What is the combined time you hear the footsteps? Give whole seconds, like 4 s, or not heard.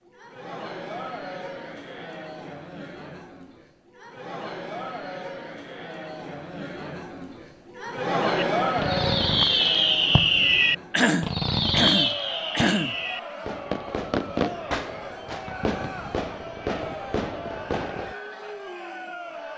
not heard.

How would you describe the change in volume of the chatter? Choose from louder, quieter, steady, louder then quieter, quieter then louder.
louder then quieter.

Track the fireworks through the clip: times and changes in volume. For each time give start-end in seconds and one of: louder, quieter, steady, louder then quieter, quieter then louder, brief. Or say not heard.
8.3-18.1 quieter.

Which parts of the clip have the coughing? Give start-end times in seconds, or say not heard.
10.9-12.9.